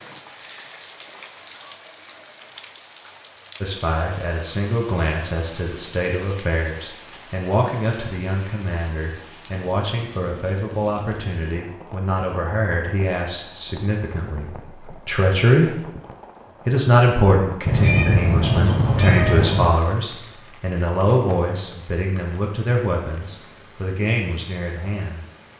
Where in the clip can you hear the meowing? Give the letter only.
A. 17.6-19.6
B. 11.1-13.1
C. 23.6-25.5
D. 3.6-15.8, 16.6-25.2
A.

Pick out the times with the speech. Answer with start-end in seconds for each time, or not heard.
3.6-15.8, 16.6-25.2.